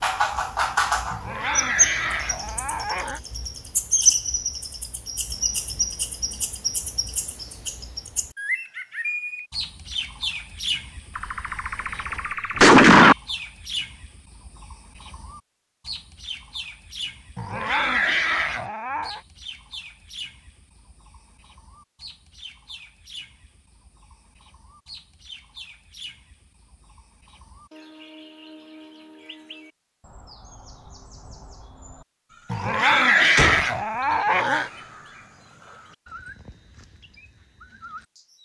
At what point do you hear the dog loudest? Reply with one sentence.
The loudest moment of the dog is at 33 seconds.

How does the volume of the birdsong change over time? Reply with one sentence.
The volume of the birdsong goes down.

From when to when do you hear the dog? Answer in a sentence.
You can hear the dog from 1.1 to 3.2 s, from 17.4 to 19.2 s and from 32.5 to 34.7 s.